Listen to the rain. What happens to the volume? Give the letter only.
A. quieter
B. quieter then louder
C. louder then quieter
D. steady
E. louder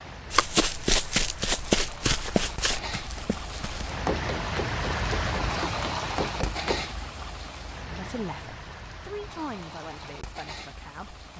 C.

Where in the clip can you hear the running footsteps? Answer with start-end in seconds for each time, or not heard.
0.3-6.8.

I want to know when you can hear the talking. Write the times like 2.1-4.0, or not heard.
7.8-11.3.